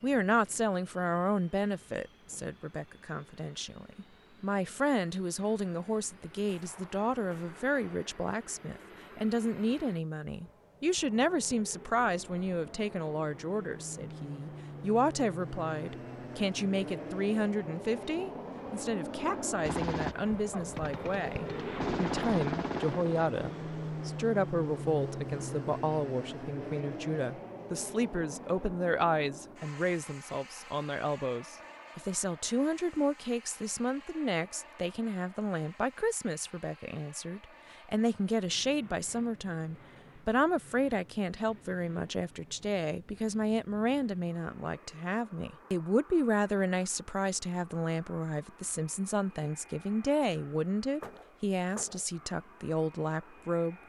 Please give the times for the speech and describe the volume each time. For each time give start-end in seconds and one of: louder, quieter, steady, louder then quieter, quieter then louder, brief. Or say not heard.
0.0-53.8 steady.